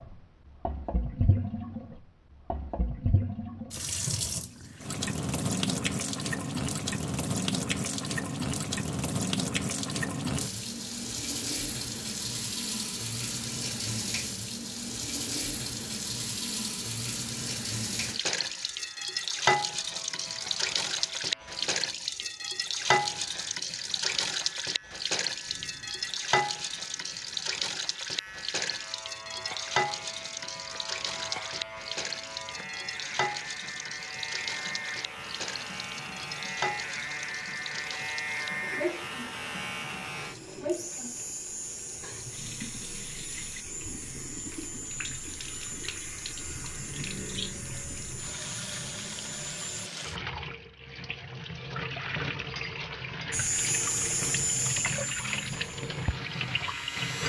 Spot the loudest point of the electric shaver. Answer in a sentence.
The loudest moment of the electric shaver is at 54 seconds.